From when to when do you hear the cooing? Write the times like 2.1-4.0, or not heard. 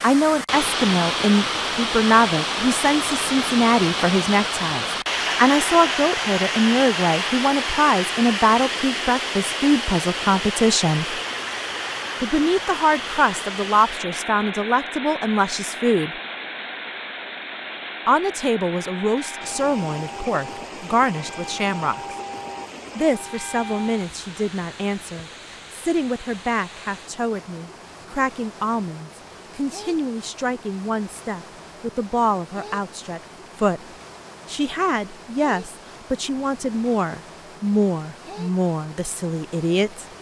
not heard.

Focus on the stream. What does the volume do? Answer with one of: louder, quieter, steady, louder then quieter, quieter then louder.
quieter.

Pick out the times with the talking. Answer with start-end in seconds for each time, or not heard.
0.0-11.2, 12.2-16.1, 18.1-22.1, 22.9-33.8, 34.5-40.0.